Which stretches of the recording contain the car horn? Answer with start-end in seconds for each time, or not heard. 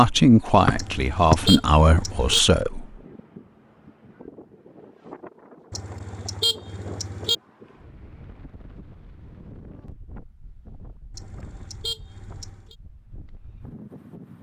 0.8-2.4, 5.7-7.3, 11.1-12.8.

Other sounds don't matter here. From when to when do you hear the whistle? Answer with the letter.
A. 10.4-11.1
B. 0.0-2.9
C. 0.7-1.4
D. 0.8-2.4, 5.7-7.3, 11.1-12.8
C.